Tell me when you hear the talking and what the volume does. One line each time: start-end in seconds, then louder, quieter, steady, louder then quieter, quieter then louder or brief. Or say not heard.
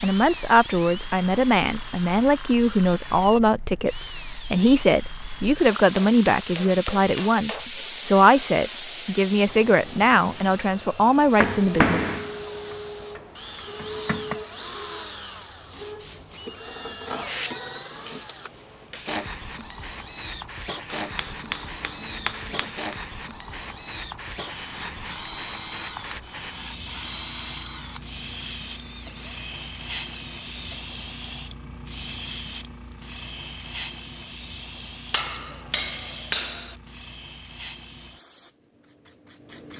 0.0-12.0 steady.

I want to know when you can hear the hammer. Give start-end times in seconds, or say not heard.
5.7-7.7, 11.4-14.3, 20.9-22.9, 35.1-36.8.